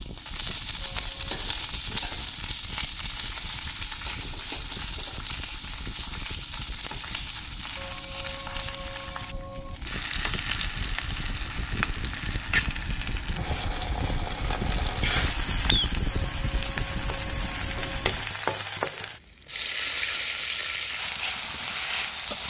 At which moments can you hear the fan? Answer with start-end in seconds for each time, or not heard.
0.0-18.4.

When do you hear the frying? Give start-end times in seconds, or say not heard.
0.0-22.4.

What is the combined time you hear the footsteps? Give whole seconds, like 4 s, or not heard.
not heard.